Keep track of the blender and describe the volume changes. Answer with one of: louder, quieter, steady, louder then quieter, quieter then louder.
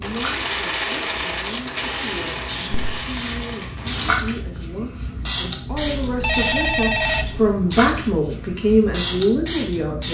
quieter.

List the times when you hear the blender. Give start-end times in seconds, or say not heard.
0.0-4.1.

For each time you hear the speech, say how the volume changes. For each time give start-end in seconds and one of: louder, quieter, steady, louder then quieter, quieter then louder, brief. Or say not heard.
0.0-10.0 louder.